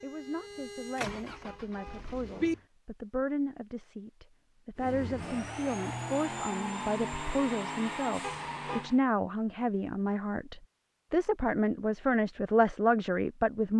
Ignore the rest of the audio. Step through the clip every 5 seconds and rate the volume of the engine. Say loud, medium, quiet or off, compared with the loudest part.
medium, loud, off.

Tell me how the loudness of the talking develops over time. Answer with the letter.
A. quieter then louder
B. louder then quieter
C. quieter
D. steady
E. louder
E.